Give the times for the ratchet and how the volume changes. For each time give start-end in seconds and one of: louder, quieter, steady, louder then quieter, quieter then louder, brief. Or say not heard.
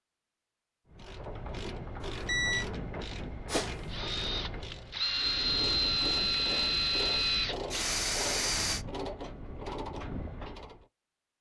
0.9-10.8 steady.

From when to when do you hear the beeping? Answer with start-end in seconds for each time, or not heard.
2.0-2.6.